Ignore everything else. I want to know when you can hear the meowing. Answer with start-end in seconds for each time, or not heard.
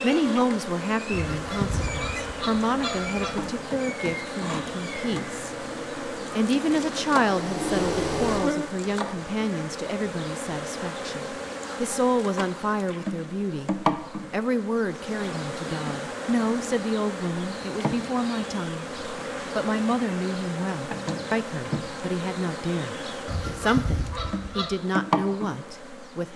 not heard.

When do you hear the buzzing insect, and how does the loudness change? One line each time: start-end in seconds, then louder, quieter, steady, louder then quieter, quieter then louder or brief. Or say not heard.
0.0-26.3 steady.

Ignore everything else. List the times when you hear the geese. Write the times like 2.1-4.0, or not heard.
1.1-3.5, 23.2-24.8.